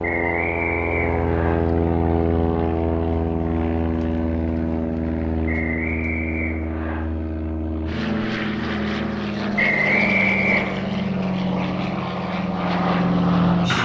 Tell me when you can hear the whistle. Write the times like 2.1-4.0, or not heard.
0.0-1.6, 5.5-7.0, 9.6-10.9.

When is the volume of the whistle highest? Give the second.
10 s.